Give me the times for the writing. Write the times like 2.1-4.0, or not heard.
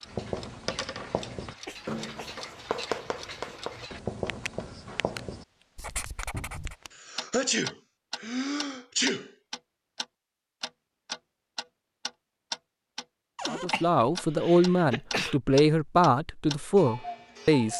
0.1-6.8.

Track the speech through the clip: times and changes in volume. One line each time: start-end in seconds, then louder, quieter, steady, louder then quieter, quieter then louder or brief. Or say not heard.
13.4-17.7 steady.